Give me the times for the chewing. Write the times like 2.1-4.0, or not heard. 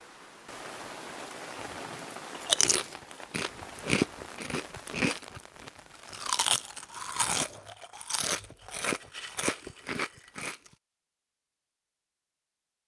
2.3-10.6.